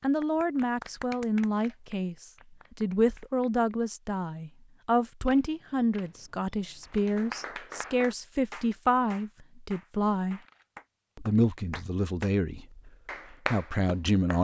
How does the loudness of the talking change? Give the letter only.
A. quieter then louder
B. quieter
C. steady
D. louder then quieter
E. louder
C.